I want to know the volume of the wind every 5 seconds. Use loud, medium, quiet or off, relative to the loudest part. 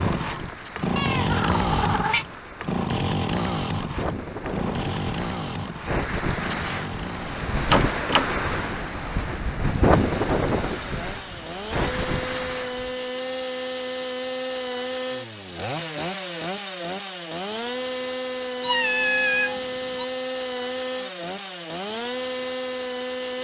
medium, loud, loud, off, off.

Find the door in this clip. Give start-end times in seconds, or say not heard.
7.7-8.3.